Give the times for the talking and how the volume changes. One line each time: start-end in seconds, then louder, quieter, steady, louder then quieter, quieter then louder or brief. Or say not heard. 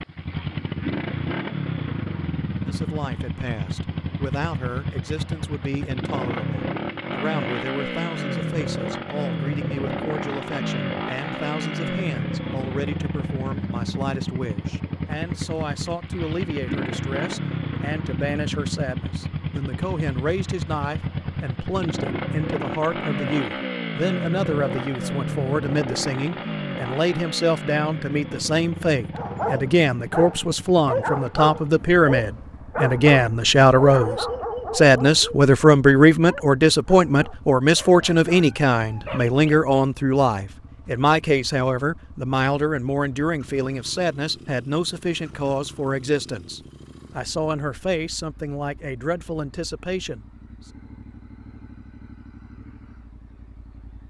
2.6-50.2 louder then quieter.